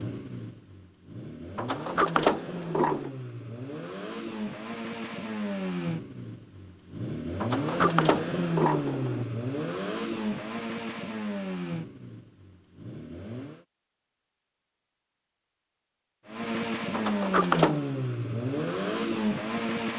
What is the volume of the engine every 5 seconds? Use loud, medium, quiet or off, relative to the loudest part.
medium, loud, medium, loud.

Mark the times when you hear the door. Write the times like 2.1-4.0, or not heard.
1.6-3.1, 7.4-9.2, 16.9-17.8.